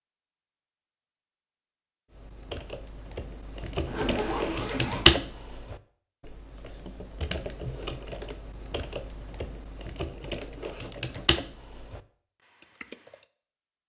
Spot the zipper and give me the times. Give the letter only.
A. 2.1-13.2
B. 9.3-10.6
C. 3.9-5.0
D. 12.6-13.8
C.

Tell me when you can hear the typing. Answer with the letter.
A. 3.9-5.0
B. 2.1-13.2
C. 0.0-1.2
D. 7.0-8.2
B.